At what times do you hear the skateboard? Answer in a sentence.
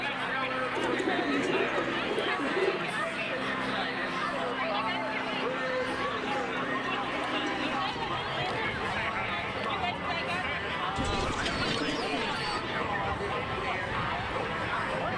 You can't hear the skateboard here.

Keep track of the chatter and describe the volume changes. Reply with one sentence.
The volume of the chatter stays about the same.